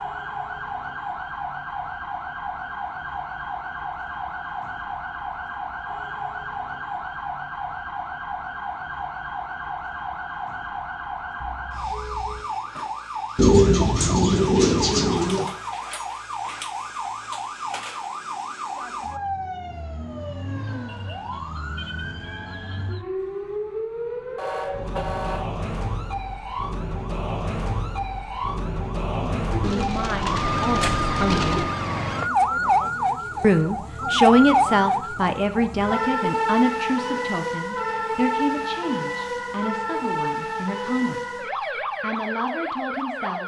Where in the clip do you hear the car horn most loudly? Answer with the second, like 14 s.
25 s.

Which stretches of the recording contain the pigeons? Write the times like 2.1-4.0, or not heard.
13.3-15.5, 29.6-31.6.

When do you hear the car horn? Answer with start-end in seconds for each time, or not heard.
11.4-12.5, 24.4-25.5.